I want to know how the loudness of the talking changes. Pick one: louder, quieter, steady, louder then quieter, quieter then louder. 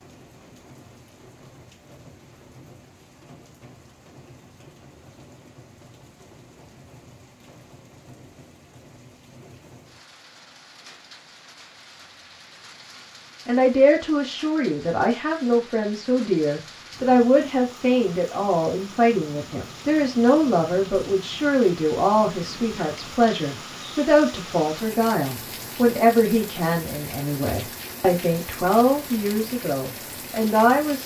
steady.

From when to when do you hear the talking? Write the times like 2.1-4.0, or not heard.
13.4-31.0.